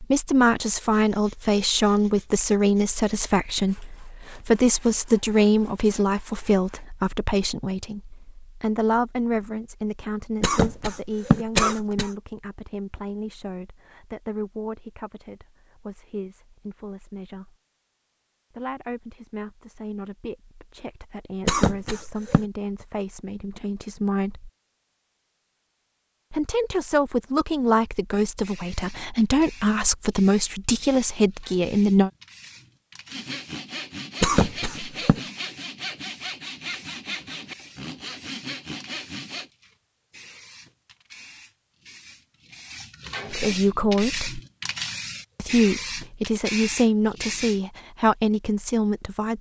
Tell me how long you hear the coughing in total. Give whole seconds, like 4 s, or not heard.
4 s.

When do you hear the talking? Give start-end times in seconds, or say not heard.
0.0-17.6, 18.5-24.5, 26.3-32.1, 43.3-44.4, 45.4-49.3.